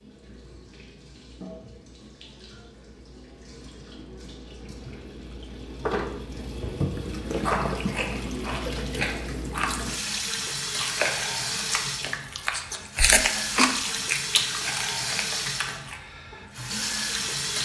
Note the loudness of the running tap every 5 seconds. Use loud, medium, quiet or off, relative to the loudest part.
quiet, loud, loud, loud.